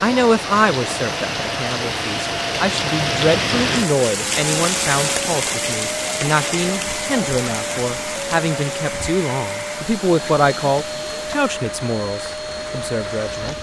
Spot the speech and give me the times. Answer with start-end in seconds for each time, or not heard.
0.0-13.5.